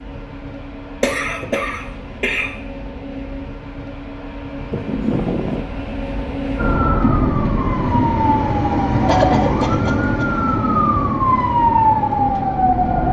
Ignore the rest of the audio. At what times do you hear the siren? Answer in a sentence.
You can hear the siren from 6.5 to 13.0 s.